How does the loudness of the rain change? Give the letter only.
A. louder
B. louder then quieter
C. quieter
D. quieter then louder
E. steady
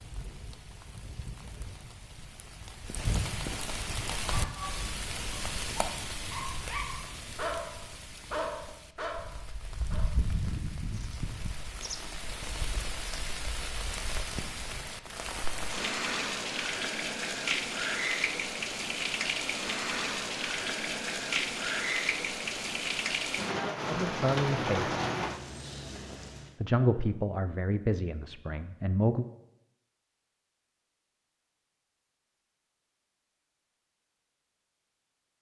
A.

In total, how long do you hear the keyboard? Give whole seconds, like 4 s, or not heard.
not heard.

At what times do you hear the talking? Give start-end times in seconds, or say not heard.
23.9-24.9, 26.6-29.2.